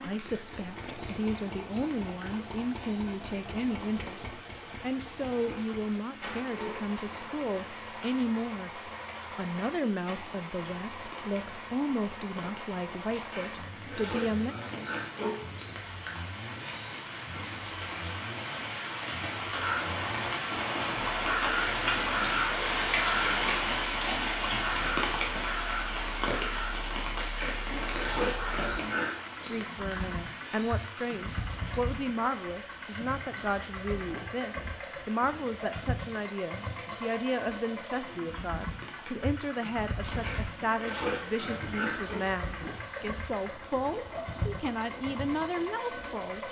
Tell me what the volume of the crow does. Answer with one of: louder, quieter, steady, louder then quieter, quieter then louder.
quieter.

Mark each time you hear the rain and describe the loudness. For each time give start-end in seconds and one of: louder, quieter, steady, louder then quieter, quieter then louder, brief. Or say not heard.
0.0-46.4 louder then quieter.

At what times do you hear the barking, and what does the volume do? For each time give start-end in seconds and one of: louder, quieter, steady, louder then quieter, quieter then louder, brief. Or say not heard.
not heard.